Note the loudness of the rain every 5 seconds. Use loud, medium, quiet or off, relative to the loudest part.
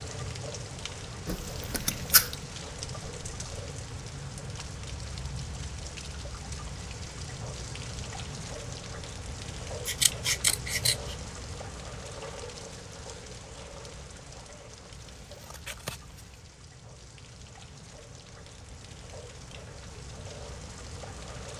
loud, loud, loud, medium, loud.